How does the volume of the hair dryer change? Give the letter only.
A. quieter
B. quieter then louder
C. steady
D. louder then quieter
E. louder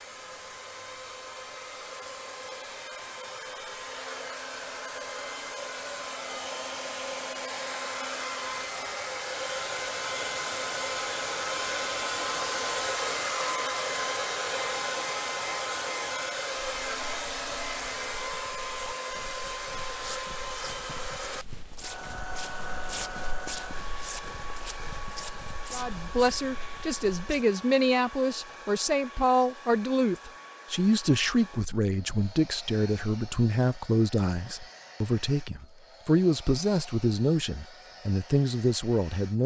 D.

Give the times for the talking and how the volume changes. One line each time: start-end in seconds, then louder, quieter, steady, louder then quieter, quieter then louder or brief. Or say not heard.
25.7-39.4 steady.